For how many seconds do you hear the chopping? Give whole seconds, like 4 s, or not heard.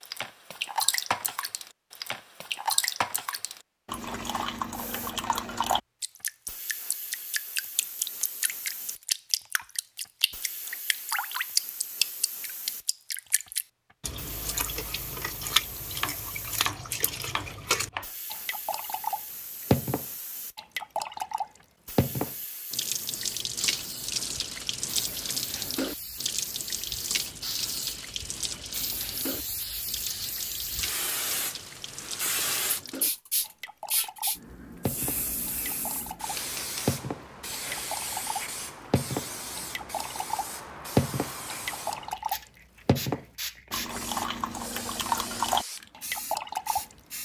2 s.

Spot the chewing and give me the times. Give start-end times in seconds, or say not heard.
not heard.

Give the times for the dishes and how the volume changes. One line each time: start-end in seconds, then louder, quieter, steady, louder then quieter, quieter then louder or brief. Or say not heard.
not heard.